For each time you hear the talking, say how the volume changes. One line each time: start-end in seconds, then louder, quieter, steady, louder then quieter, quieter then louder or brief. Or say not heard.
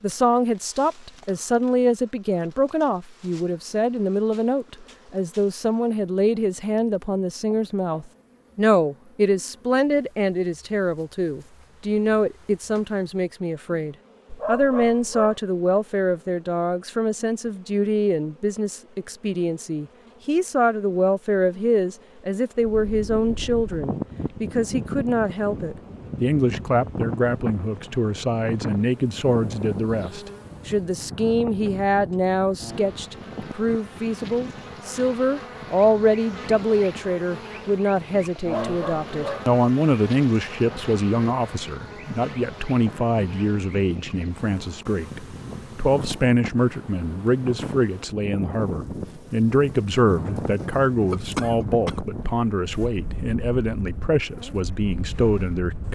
0.0-55.9 steady.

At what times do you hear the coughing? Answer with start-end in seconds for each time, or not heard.
51.1-52.0.